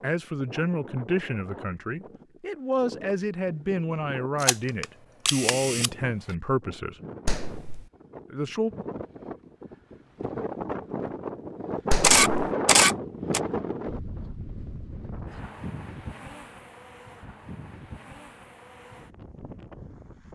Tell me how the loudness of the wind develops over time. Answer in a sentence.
The volume of the wind goes up, then down.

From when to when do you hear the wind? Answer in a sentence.
You can hear the wind from 0.0 to 20.3 s.